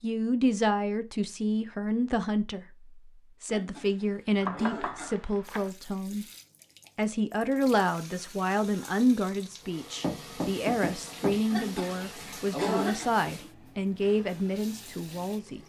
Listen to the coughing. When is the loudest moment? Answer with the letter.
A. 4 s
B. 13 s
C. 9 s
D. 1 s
B.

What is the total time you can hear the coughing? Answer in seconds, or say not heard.
3 s.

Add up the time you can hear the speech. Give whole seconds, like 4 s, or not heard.
15 s.